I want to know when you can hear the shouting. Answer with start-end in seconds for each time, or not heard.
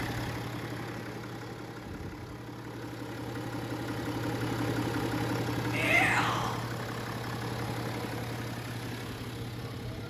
5.7-6.5.